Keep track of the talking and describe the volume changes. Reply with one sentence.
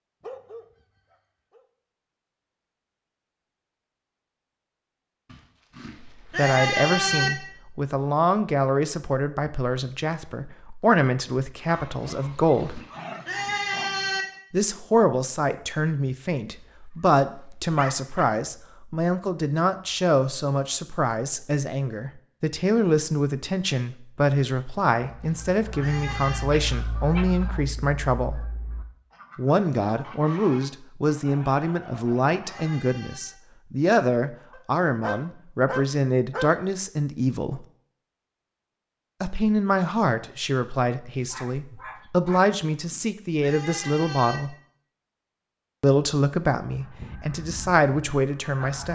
The volume of the talking stays about the same.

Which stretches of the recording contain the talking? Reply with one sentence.
The talking can be heard from 6.0 to 12.8 s, from 14.5 to 28.4 s, from 29.4 to 37.6 s, from 39.2 to 44.5 s and from 45.8 to 48.9 s.